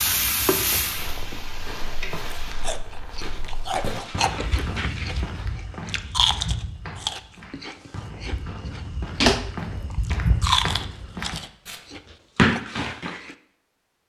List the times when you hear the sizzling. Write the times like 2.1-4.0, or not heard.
0.0-2.5.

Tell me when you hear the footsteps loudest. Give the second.
10 s.